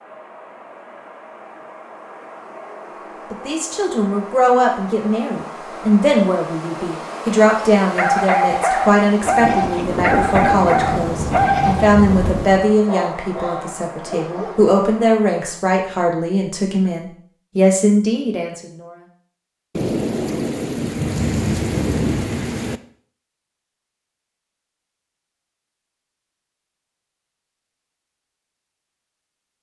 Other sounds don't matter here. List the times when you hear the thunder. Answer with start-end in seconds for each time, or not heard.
9.2-12.7, 19.8-22.8.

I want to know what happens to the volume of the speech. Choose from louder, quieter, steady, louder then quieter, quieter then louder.
steady.